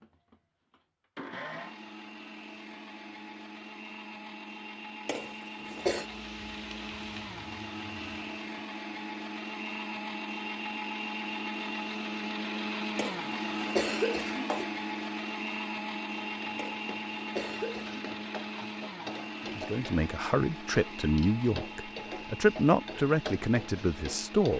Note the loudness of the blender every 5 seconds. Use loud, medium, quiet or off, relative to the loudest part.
medium, medium, loud, loud, medium.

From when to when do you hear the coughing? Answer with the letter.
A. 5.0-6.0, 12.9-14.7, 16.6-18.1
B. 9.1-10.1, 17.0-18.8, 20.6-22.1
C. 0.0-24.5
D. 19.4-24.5
A.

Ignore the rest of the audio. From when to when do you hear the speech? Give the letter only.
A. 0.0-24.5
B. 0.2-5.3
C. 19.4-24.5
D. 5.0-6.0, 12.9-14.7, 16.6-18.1
C.